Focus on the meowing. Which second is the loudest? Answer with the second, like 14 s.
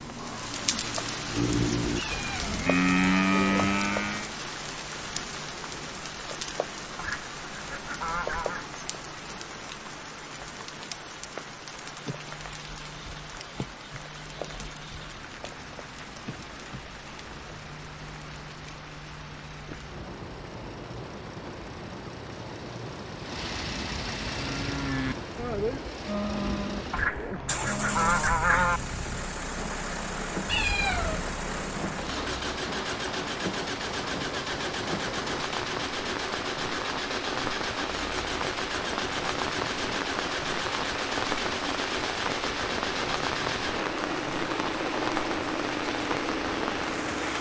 31 s.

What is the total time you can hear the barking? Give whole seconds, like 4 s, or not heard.
not heard.